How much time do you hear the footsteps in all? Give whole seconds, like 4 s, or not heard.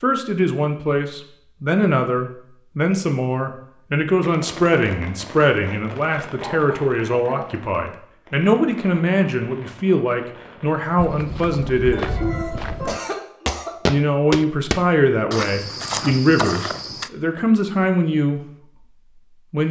6 s.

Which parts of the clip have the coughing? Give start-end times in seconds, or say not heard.
6.4-7.5, 11.9-13.8.